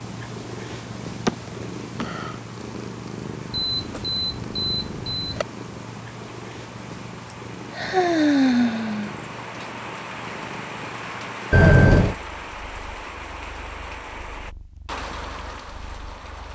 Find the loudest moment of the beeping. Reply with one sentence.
The volume of the beeping peaks at 12 seconds.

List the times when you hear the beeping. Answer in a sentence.
You can hear the beeping from 3.5 to 5.5 s and from 11.5 to 12.2 s.